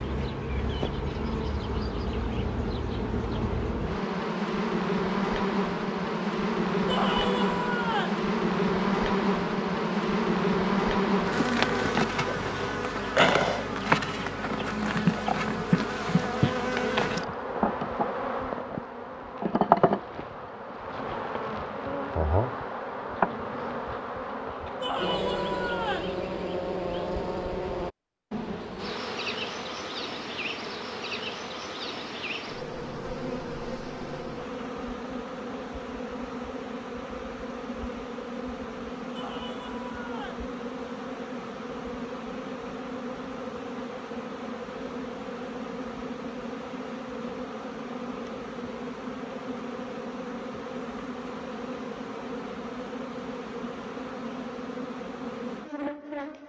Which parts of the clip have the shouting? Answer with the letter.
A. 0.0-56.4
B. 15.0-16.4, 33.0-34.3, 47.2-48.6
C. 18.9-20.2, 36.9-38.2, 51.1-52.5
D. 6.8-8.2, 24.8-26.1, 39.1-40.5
D.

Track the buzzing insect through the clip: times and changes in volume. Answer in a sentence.
The buzzing insect can be heard from 0.0 to 56.4 s, getting quieter.